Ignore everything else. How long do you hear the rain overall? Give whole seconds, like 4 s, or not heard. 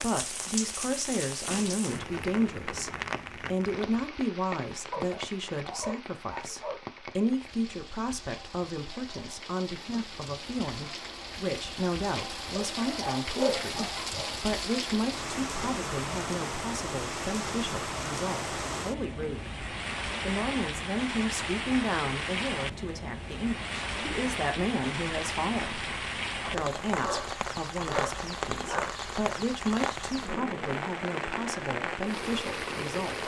33 s.